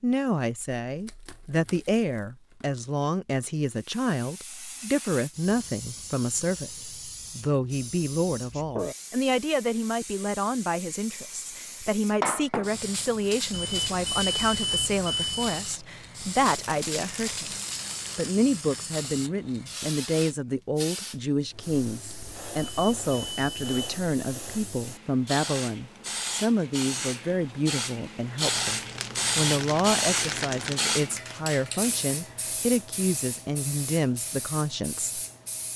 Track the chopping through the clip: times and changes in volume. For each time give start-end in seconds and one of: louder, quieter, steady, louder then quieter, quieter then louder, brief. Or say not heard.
not heard.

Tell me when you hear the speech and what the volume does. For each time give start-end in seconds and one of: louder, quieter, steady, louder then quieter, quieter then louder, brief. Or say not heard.
0.0-17.5 steady
18.1-35.2 steady.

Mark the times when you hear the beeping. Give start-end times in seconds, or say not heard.
13.5-15.7, 22.6-23.8.